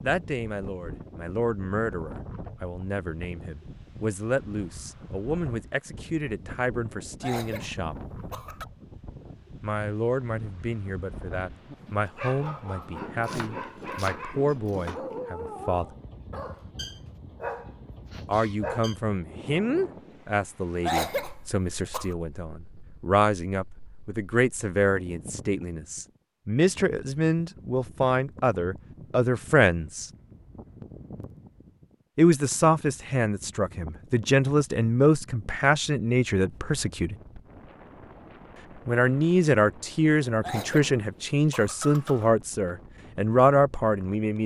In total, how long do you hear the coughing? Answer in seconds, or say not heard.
5 s.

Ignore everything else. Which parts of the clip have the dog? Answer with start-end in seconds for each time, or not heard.
11.3-19.0.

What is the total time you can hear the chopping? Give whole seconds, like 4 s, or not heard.
2 s.